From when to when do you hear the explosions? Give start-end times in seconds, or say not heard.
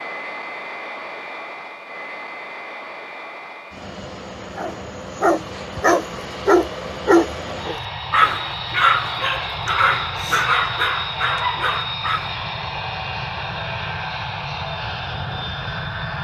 not heard.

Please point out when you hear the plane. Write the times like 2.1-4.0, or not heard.
0.0-16.1.